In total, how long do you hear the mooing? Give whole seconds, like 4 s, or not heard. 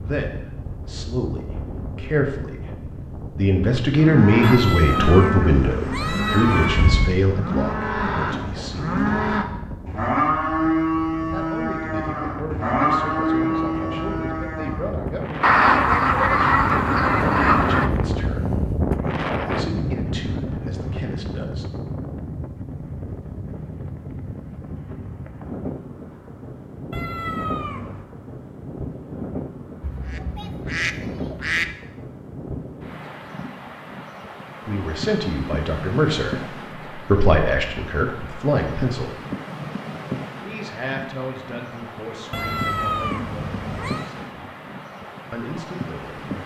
11 s.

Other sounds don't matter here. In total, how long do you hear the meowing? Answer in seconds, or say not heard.
6 s.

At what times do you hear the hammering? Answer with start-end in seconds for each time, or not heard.
not heard.